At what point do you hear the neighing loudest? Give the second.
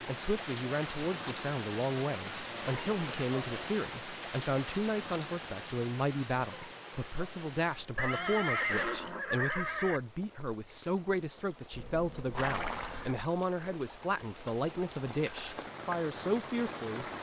9 s.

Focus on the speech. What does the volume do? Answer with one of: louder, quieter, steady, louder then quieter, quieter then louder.
steady.